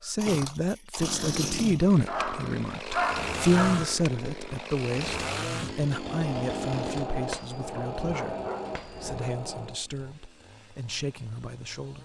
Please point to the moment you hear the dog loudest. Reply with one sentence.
The volume of the dog peaks at 3 seconds.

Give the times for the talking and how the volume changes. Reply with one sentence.
The talking can be heard from 0.0 to 12.0 s, getting quieter.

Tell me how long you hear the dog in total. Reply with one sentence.
The dog can be heard for 3 seconds in total.